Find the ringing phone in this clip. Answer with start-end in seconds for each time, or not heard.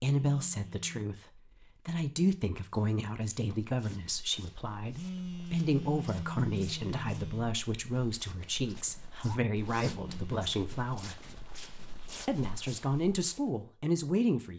0.1-1.1, 4.9-7.5, 9.8-10.5.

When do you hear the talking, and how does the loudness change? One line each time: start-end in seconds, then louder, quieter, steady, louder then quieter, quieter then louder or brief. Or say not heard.
0.0-11.2 steady
12.2-14.5 brief.